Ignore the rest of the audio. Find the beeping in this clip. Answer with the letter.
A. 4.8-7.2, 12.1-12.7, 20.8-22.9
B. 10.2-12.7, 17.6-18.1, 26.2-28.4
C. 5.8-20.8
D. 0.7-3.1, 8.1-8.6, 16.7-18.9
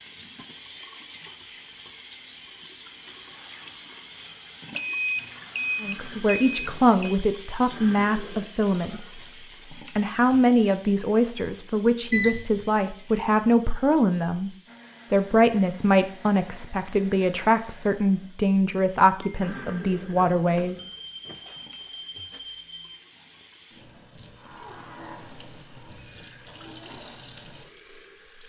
A.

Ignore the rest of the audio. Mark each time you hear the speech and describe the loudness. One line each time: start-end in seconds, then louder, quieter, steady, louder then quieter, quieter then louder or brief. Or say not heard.
5.8-20.8 steady.